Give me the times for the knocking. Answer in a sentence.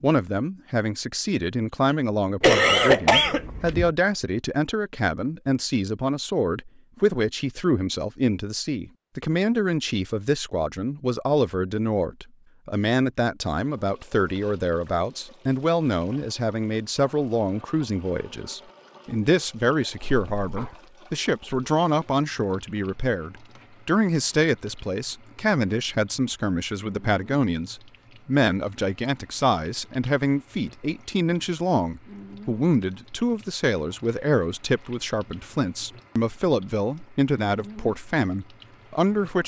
The knocking can't be heard in this clip.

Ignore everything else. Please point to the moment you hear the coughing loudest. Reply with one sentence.
The volume of the coughing peaks at 3 seconds.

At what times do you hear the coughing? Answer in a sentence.
You can hear the coughing from 2.4 to 3.9 s and from 20.0 to 20.8 s.